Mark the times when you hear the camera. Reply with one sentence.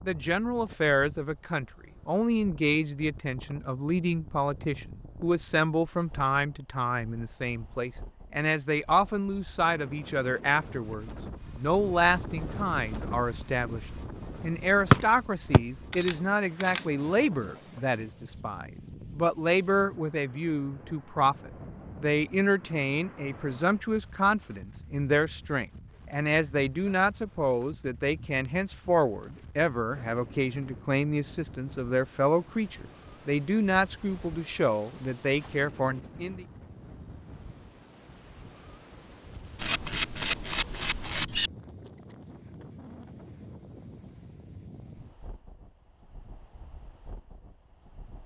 The camera can be heard from 15.9 to 16.9 s and from 39.5 to 41.5 s.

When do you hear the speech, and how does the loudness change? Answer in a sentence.
You can hear the speech from 0.0 to 36.5 s, at a steady volume.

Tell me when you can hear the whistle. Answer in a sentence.
You can hear the whistle from 14.9 to 16.1 s.